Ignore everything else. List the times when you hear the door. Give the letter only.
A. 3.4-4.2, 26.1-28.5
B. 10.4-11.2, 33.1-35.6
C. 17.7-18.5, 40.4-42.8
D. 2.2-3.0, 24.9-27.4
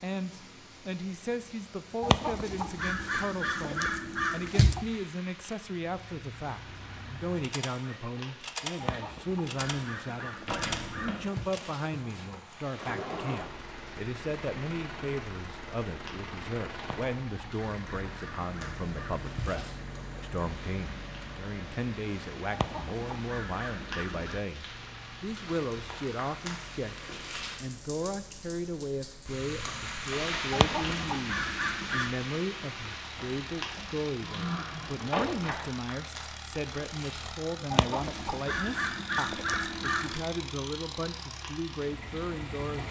B.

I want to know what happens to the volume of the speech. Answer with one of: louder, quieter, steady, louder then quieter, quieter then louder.
steady.